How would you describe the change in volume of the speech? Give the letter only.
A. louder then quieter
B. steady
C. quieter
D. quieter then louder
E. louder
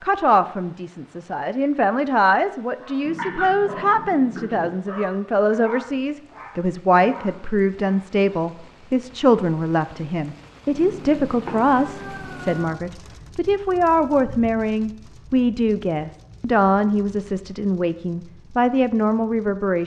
B.